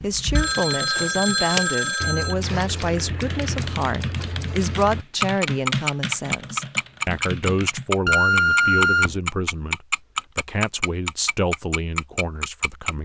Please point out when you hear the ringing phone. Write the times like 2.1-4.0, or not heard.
0.3-2.4, 8.1-9.2.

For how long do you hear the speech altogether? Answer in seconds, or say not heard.
13 s.